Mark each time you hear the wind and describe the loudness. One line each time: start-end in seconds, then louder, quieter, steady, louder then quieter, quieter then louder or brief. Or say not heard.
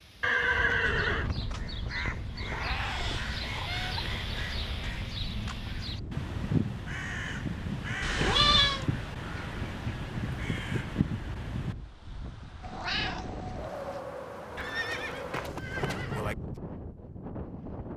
0.0-17.9 steady.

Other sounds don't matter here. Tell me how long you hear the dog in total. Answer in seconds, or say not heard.
not heard.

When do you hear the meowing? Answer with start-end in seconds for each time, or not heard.
2.5-4.0, 8.0-8.8, 12.6-14.0.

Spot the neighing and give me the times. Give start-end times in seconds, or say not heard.
0.2-1.3, 14.6-16.4.